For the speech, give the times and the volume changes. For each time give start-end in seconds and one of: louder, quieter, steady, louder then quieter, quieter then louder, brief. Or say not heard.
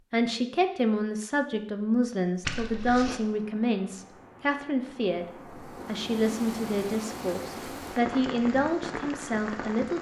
0.1-9.9 steady.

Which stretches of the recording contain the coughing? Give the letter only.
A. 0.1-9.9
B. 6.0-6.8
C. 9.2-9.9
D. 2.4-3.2
D.